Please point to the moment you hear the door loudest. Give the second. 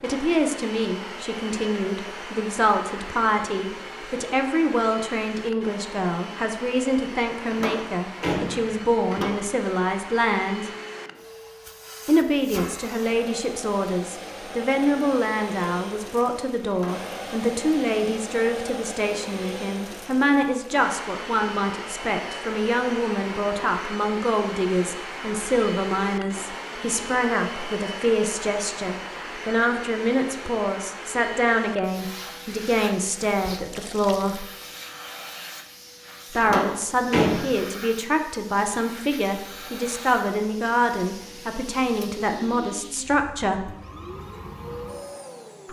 37 s.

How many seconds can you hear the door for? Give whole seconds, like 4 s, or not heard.
3 s.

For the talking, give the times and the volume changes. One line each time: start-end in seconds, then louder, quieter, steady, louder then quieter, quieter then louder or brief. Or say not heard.
0.0-10.7 steady
12.1-34.5 steady
36.3-43.7 steady.